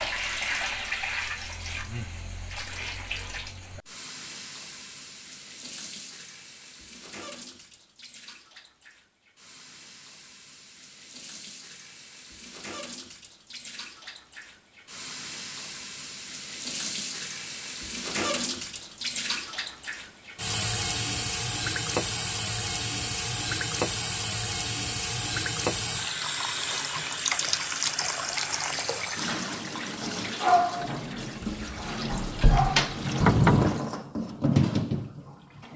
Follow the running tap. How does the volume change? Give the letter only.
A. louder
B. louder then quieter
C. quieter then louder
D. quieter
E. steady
C.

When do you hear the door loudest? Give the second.
33 s.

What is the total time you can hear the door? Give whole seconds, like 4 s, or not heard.
2 s.